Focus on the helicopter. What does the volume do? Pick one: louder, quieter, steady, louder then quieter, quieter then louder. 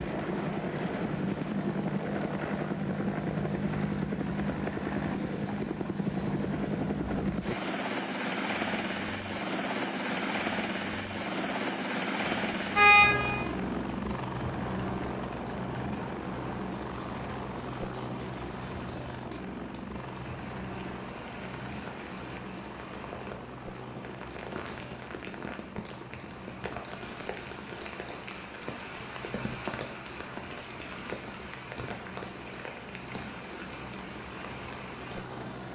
quieter.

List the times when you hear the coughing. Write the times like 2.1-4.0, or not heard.
not heard.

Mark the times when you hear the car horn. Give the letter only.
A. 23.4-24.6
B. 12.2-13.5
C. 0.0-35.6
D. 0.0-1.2
B.